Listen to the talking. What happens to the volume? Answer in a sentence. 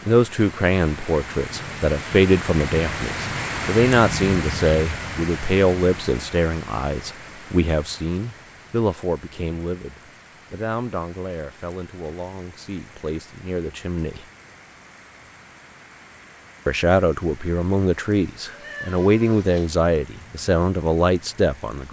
The volume of the talking goes down, then up.